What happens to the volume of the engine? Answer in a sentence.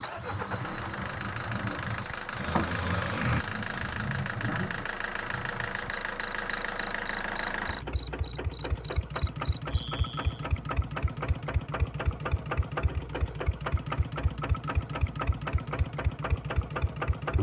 The loudness of the engine stays about the same.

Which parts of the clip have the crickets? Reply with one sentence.
You can hear the crickets from 0.0 to 11.7 s.